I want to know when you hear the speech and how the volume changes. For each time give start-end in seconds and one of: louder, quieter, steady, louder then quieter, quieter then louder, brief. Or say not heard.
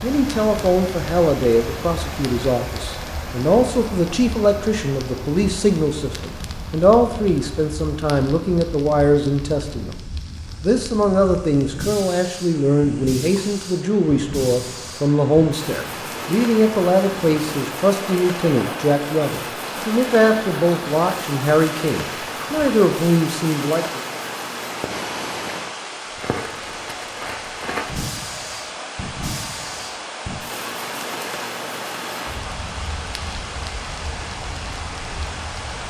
0.0-9.9 steady
10.6-24.0 steady.